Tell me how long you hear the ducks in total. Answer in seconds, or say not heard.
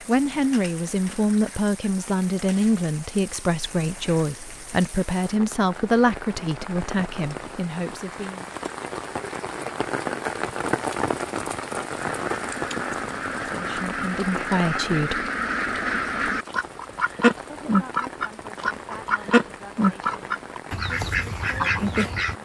10 s.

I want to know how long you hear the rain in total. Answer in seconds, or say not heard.
22 s.